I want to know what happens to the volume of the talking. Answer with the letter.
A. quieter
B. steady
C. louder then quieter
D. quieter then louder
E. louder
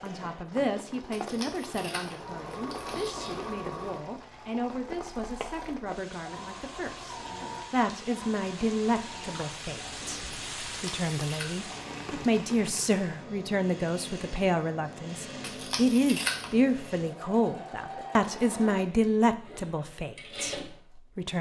E.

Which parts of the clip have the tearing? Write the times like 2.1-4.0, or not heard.
1.1-3.5, 10.7-11.7, 15.4-16.6.